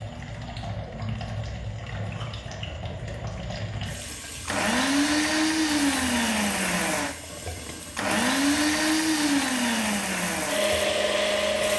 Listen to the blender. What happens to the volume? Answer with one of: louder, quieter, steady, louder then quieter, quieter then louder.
steady.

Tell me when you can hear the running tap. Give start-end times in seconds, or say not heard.
0.0-11.7.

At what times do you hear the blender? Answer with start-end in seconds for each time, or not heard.
4.5-11.7.